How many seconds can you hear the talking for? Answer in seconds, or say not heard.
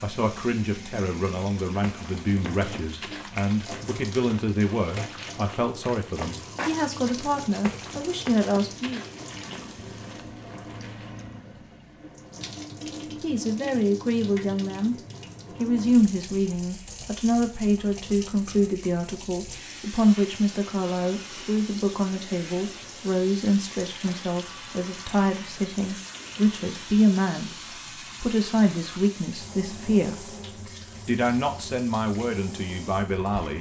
27 s.